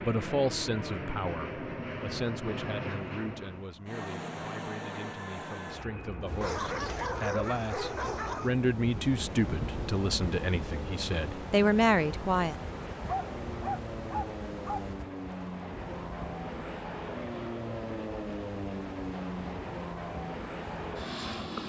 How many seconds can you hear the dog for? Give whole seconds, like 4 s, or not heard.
4 s.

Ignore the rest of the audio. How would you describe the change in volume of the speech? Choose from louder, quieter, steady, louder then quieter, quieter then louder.
quieter then louder.